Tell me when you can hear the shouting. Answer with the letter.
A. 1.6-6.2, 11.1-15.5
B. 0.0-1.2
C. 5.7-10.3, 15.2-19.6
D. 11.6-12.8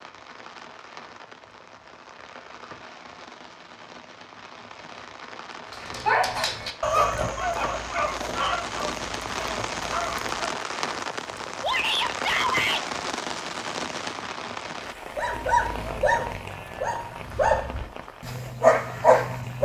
D.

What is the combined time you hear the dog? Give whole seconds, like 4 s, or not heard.
9 s.